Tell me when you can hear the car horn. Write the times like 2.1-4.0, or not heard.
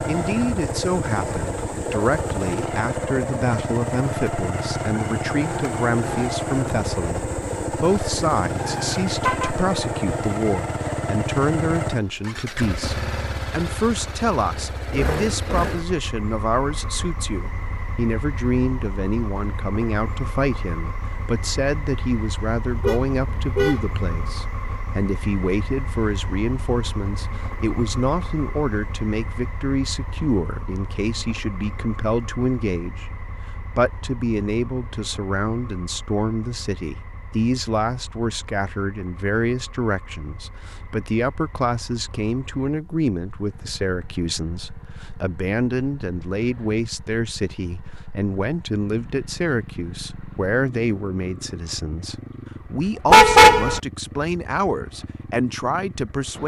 9.1-9.5, 22.6-24.3, 53.1-53.8.